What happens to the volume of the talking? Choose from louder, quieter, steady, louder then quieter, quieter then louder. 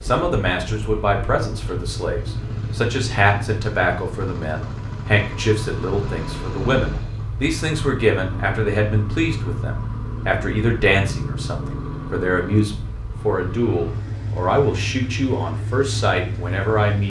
steady.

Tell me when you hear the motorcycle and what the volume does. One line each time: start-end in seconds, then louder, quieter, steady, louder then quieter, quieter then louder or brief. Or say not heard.
0.0-17.0 steady.